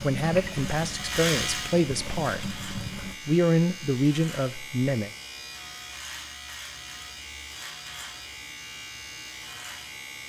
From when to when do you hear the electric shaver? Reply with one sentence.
The electric shaver can be heard from 0.0 to 10.2 s.